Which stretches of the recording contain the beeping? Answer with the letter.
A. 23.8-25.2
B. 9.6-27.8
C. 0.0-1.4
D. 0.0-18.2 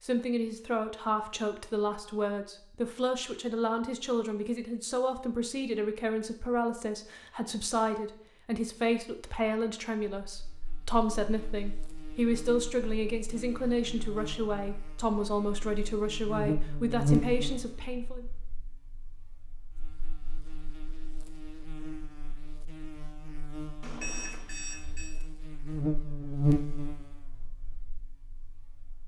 A.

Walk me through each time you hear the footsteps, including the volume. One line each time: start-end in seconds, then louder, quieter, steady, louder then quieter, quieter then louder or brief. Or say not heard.
not heard.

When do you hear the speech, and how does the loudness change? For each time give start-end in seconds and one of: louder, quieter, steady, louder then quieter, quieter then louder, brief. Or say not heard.
0.0-18.2 steady.